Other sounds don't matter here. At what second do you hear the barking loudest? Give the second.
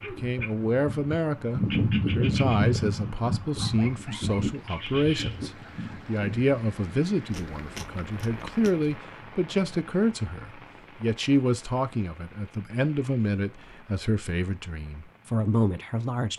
2 s.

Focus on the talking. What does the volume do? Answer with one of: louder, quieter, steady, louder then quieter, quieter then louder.
steady.